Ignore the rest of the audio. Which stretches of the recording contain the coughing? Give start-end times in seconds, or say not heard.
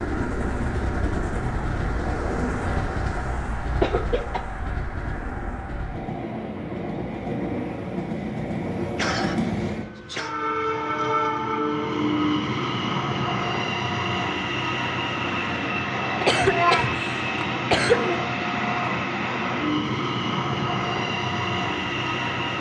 3.8-4.4, 8.9-10.3, 16.2-18.2.